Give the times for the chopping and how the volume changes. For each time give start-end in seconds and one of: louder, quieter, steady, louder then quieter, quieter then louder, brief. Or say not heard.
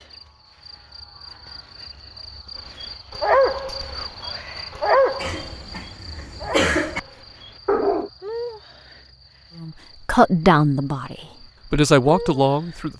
not heard.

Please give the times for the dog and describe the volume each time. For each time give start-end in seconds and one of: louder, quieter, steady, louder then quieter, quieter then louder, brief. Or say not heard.
2.8-8.1 quieter.